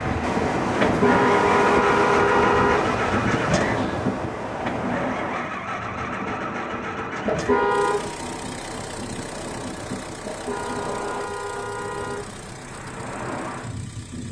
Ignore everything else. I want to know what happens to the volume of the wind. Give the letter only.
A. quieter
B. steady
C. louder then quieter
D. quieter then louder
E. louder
A.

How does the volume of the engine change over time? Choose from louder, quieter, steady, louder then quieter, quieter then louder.
quieter.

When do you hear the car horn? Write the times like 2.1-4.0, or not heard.
0.8-2.8, 7.2-8.0, 10.2-12.2.